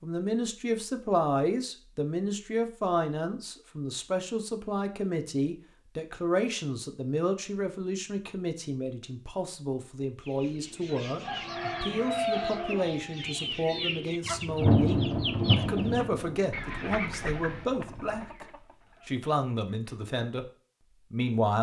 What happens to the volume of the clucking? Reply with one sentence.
The volume of the clucking goes down.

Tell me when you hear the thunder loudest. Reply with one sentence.
The loudest moment of the thunder is at 15 seconds.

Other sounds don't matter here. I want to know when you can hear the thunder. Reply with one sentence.
The thunder can be heard from 14.4 to 18.1 s.